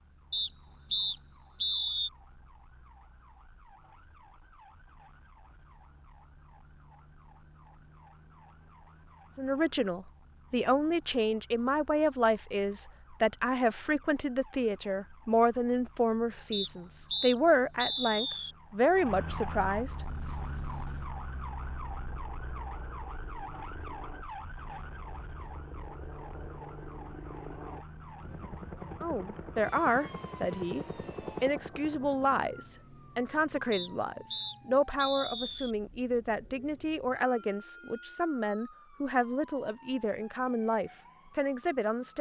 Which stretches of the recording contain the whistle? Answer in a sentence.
The whistle can be heard from 0.3 to 2.1 s, from 16.5 to 18.6 s and from 33.7 to 35.7 s.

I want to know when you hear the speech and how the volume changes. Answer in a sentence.
You can hear the speech from 9.3 to 20.4 s, at a steady volume; and from 29.0 to 42.1 s, at a steady volume.